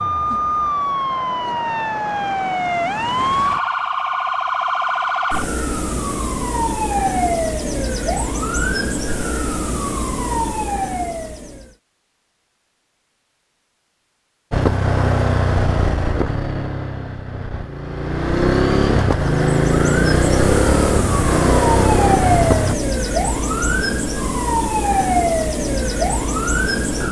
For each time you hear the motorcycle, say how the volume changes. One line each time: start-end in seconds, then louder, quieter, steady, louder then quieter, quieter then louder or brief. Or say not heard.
14.5-22.8 quieter then louder.